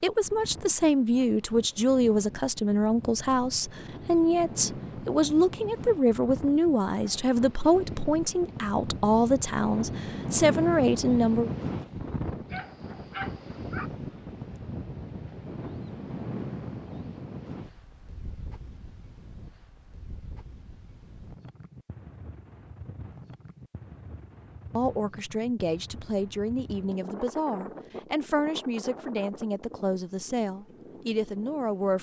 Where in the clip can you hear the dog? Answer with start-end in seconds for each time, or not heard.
12.5-13.9.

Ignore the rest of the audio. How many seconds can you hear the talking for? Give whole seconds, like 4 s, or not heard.
19 s.